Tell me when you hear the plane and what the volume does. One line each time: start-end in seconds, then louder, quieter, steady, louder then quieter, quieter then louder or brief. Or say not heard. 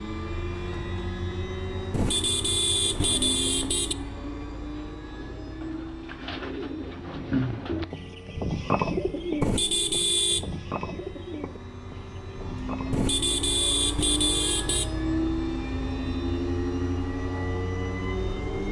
0.0-18.6 quieter then louder.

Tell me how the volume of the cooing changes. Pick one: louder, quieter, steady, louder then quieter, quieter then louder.
louder then quieter.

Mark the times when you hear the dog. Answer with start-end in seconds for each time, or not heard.
not heard.